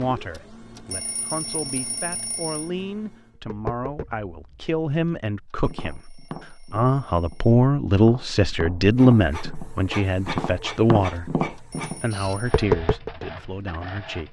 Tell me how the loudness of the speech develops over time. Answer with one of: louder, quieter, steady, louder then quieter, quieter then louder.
louder then quieter.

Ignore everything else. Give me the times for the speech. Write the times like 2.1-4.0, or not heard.
0.0-14.2.